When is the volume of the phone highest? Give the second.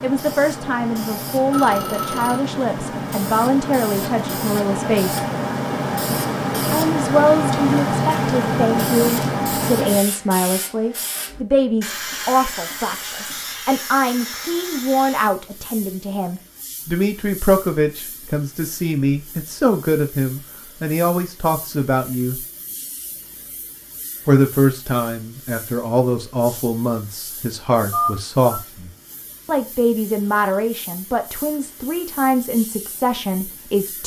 28 s.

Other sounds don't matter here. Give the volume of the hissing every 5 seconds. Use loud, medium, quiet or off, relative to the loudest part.
medium, loud, medium, quiet, quiet, quiet, quiet.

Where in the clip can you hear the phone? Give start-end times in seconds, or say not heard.
1.5-2.4, 27.9-28.6.